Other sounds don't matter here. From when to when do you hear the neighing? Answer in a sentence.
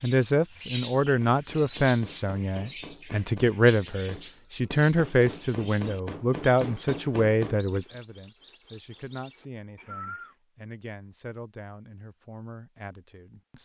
The neighing can't be heard in this clip.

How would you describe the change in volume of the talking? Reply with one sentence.
The loudness of the talking goes down.